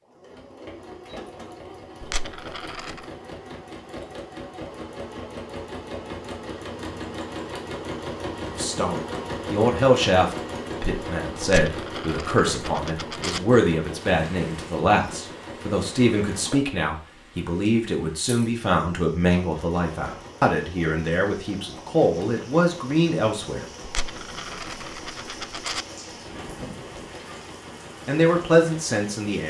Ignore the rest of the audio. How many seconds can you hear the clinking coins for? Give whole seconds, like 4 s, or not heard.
5 s.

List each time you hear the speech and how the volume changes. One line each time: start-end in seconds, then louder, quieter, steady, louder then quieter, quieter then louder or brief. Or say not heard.
8.5-23.6 steady
28.1-29.4 brief.